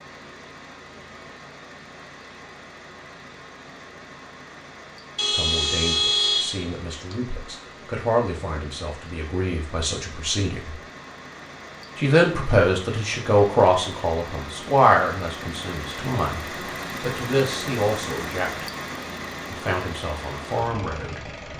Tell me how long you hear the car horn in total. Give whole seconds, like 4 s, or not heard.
2 s.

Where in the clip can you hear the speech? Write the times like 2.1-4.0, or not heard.
5.3-10.8, 11.9-18.6, 19.5-21.5.